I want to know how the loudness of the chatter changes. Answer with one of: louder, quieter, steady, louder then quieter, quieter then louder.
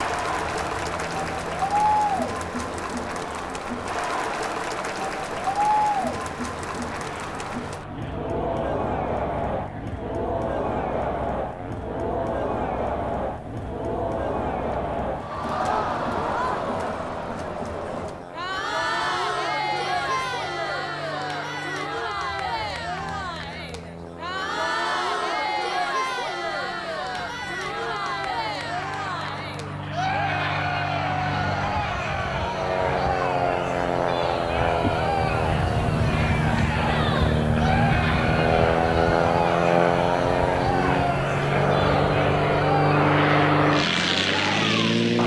steady.